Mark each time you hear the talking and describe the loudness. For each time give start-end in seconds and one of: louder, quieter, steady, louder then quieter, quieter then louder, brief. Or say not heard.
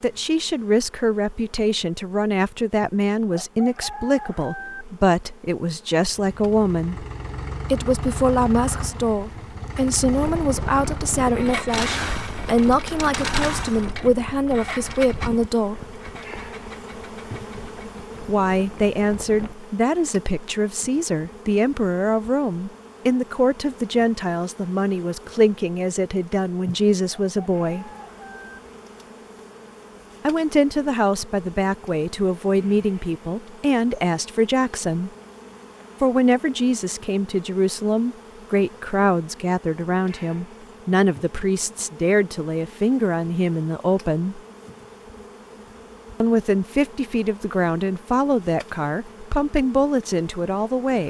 0.0-7.0 steady
7.7-15.9 steady
18.2-27.9 steady
30.2-35.1 steady
36.0-44.4 steady
46.2-51.0 steady.